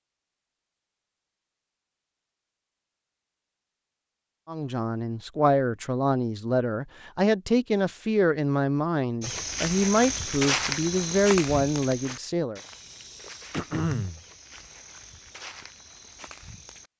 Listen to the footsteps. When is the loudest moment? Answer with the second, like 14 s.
11 s.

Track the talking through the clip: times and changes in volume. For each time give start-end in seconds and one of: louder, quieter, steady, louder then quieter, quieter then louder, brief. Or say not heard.
4.5-12.6 steady.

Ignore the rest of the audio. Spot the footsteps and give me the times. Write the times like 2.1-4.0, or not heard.
9.2-16.9.